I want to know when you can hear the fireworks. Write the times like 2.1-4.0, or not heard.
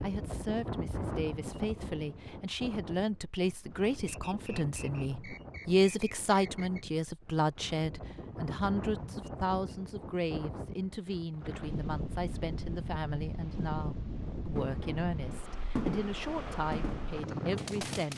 14.6-18.1.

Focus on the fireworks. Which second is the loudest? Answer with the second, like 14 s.
16 s.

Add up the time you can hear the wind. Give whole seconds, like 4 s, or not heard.
18 s.